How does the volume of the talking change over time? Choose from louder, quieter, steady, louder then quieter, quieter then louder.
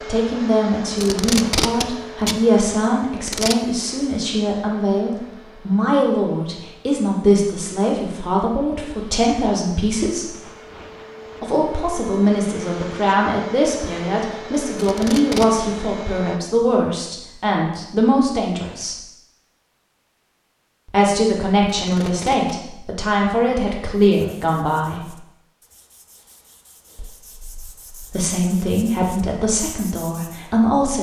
steady.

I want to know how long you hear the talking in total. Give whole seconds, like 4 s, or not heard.
26 s.